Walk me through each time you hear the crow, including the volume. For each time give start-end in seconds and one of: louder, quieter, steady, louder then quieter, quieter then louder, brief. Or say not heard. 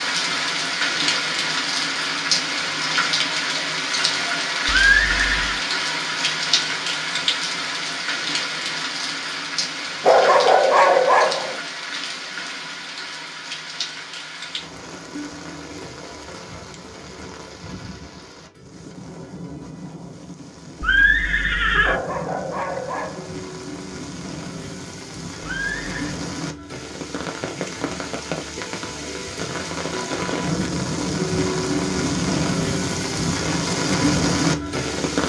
not heard.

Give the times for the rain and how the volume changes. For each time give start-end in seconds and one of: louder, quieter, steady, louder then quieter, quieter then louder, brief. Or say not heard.
0.0-35.2 quieter then louder.